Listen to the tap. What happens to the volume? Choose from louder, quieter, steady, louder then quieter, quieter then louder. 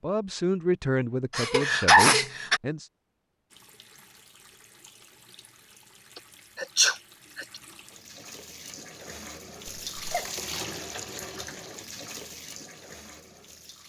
louder then quieter.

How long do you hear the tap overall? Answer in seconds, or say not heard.
10 s.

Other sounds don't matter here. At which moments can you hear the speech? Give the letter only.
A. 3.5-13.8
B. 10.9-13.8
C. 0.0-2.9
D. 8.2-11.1
C.